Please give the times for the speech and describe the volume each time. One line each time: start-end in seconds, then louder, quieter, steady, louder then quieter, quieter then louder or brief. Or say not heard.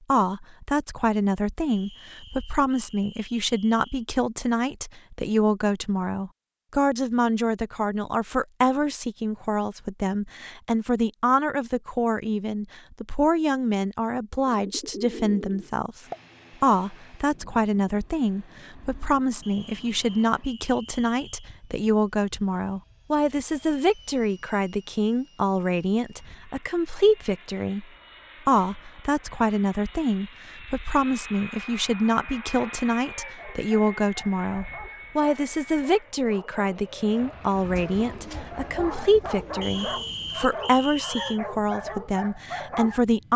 0.1-27.9 steady
28.4-43.3 steady.